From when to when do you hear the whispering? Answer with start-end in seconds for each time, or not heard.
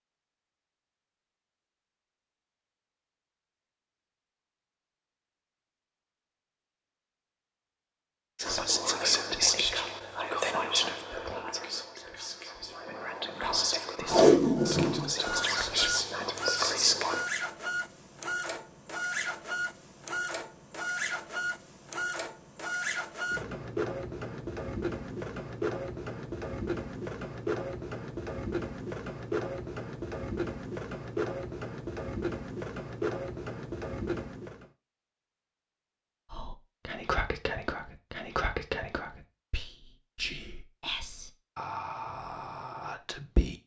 8.3-17.2, 36.3-43.6.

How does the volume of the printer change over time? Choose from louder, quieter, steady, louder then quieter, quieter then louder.
steady.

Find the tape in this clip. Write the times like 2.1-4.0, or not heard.
14.1-15.1.